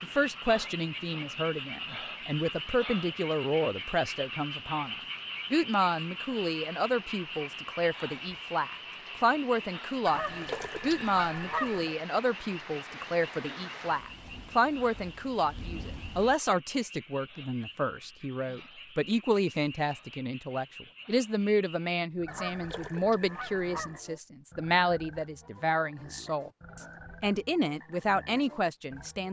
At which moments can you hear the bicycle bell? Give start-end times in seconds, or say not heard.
not heard.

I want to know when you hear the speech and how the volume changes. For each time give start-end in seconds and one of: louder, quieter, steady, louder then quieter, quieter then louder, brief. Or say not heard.
0.0-29.2 steady.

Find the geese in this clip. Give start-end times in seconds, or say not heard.
10.1-11.9, 22.2-24.0.